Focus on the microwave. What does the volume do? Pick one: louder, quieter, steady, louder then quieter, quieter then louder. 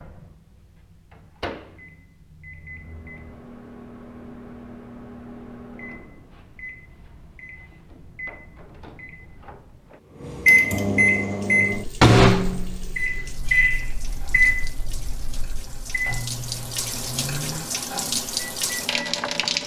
louder then quieter.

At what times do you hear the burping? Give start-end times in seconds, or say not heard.
not heard.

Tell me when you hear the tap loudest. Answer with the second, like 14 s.
19 s.